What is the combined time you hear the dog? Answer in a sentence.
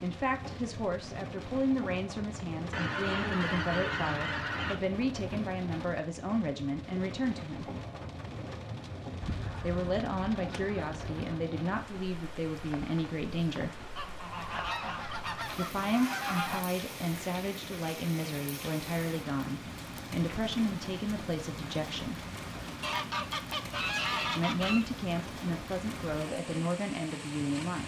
The dog can't be heard in this clip.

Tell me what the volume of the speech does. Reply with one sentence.
The volume of the speech stays about the same.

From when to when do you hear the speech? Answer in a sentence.
You can hear the speech from 0.0 to 7.7 s, from 9.6 to 13.8 s, from 15.5 to 22.2 s and from 24.3 to 27.8 s.